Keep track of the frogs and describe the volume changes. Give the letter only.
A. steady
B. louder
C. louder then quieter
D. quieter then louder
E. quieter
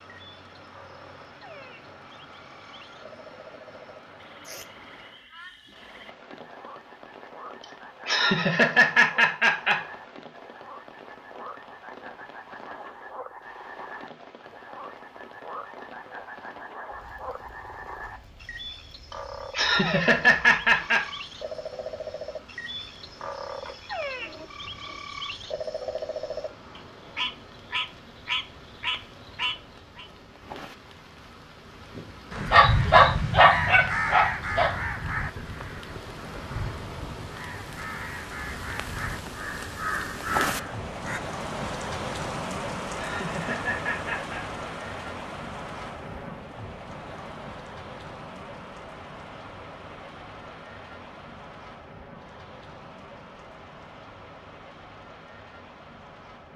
B.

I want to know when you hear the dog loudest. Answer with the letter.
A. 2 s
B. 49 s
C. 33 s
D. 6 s
C.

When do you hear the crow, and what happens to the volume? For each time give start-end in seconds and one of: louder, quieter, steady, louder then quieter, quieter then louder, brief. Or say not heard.
32.3-41.2 quieter then louder.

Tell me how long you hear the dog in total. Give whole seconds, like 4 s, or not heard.
3 s.